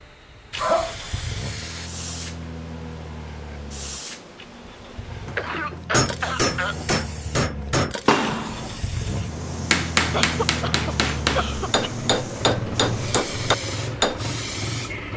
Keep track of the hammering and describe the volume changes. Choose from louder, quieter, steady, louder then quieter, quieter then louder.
steady.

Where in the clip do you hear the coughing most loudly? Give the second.
1 s.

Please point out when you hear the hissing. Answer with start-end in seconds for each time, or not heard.
0.0-15.1.